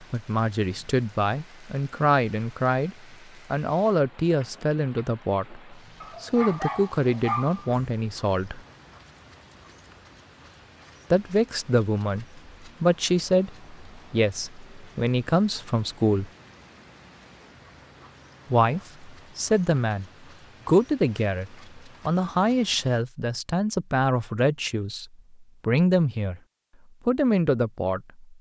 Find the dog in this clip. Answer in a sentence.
You can hear the dog from 6.0 to 7.9 s.